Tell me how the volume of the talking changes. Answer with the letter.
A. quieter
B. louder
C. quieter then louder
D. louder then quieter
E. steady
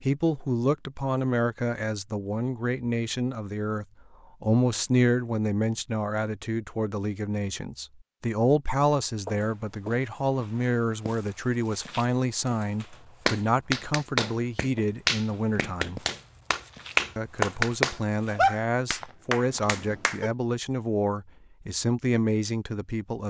E.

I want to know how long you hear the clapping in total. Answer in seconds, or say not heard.
7 s.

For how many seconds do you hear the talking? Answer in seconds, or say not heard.
22 s.